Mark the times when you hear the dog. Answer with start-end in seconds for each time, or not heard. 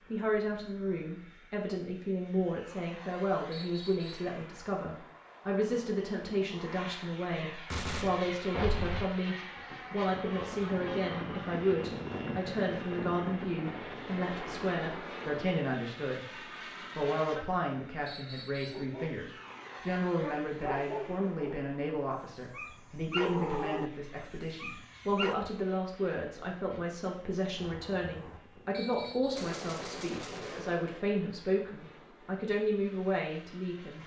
18.7-25.4.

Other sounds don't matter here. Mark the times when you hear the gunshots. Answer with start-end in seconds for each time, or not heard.
7.5-9.1, 27.6-31.1.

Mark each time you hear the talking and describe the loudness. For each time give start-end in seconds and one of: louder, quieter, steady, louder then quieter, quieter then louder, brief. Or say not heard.
0.1-16.2 steady
16.9-34.0 steady.